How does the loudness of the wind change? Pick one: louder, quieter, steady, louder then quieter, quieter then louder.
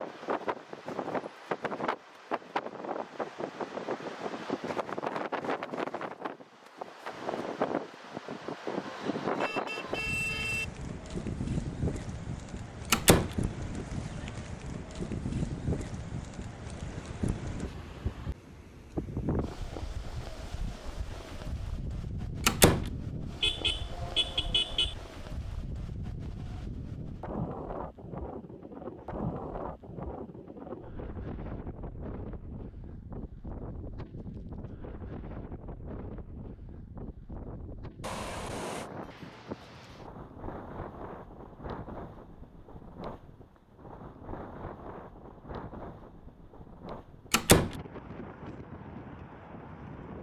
quieter.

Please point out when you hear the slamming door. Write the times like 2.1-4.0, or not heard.
12.9-13.3, 22.4-22.9, 47.3-47.8.